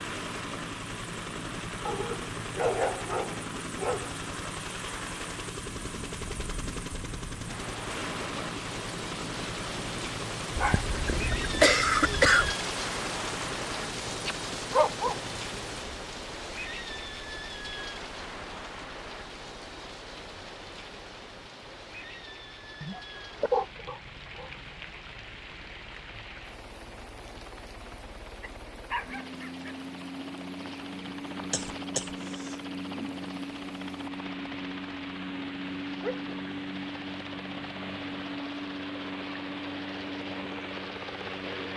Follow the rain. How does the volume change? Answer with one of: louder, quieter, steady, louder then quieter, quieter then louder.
louder then quieter.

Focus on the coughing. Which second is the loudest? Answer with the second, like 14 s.
12 s.